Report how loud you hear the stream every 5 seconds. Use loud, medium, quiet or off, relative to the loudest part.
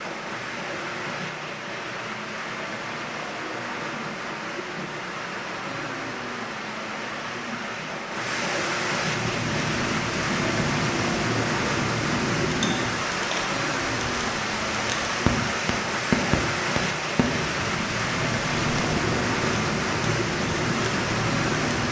medium, loud, loud, loud, loud.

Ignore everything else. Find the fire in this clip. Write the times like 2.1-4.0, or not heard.
8.9-21.8.